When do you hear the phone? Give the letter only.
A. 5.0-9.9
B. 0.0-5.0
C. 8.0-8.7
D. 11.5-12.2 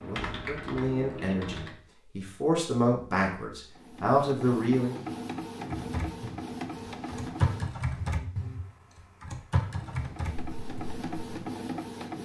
C.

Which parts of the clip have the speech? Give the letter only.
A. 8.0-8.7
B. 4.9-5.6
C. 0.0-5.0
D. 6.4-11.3
C.